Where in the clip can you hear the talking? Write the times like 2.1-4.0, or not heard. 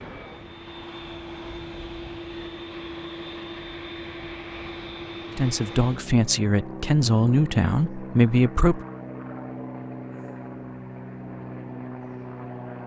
5.3-8.8.